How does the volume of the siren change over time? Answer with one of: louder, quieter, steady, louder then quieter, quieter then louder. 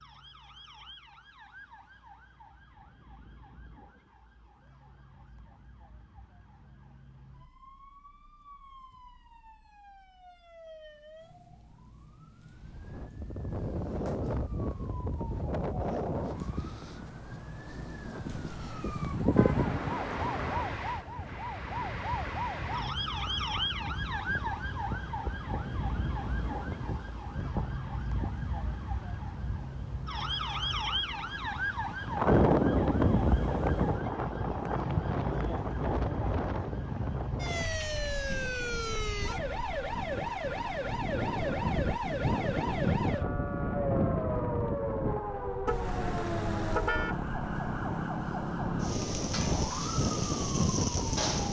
louder.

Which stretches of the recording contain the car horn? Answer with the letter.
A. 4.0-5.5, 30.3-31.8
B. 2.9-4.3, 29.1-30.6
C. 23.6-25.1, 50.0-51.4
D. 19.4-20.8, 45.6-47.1
D.